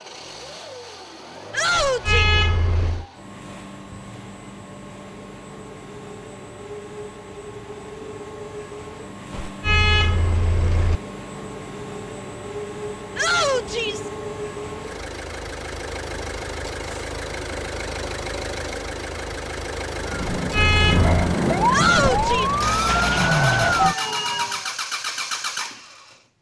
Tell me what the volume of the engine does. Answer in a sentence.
The volume of the engine goes up.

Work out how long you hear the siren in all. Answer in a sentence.
You can hear the siren for 5 seconds altogether.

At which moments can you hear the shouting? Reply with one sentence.
You can hear the shouting from 1.5 to 2.3 s, from 13.2 to 14.1 s and from 21.7 to 22.5 s.